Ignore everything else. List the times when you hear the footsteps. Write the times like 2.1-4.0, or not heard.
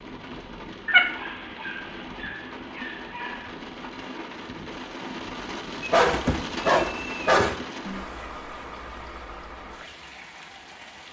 not heard.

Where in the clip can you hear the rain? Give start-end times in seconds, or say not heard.
0.0-11.0.